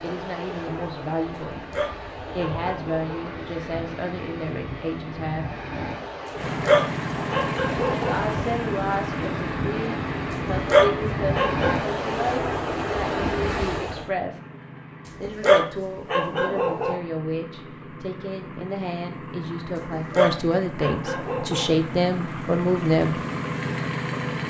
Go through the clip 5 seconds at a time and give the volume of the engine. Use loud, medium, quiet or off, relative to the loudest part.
off, loud, medium, medium, loud.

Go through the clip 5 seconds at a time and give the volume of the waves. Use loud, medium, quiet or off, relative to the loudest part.
medium, medium, loud, off, off.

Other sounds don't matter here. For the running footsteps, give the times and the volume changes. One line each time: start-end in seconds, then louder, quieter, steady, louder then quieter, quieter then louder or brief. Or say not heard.
not heard.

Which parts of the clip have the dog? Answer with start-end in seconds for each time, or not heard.
1.5-3.3, 6.5-8.2, 10.5-11.8, 15.2-17.0, 19.9-21.8.